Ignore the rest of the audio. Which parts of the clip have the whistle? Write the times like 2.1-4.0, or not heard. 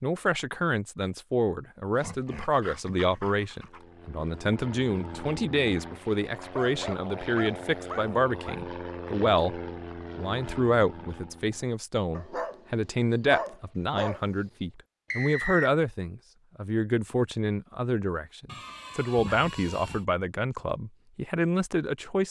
15.1-15.7.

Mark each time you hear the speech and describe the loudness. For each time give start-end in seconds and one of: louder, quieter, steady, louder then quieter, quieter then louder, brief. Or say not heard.
0.0-22.2 steady.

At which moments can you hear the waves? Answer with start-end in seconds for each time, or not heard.
not heard.